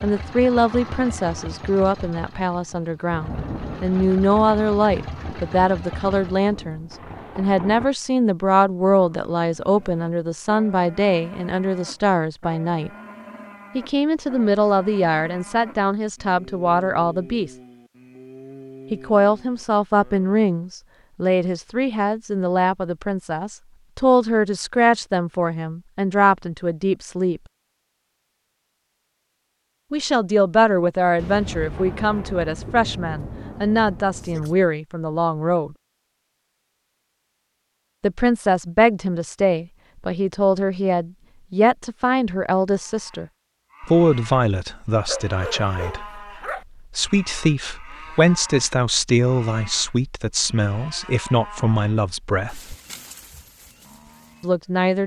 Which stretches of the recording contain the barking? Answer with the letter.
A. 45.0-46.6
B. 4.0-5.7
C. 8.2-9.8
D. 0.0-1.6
A.